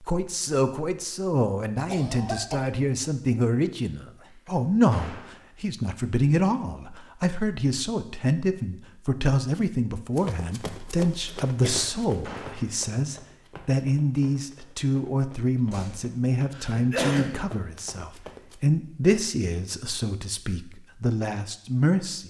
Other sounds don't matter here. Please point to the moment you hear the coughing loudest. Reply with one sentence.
The volume of the coughing peaks at 17 seconds.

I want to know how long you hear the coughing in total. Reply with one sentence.
You can hear the coughing for 3 seconds altogether.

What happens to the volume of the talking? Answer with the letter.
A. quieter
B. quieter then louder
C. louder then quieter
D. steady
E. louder
D.